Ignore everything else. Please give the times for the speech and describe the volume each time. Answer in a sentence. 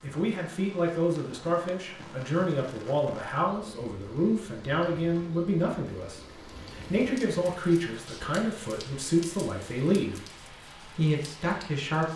You can hear the speech from 0.0 to 12.1 s, at a steady volume.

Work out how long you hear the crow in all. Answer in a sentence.
You can't hear the crow here.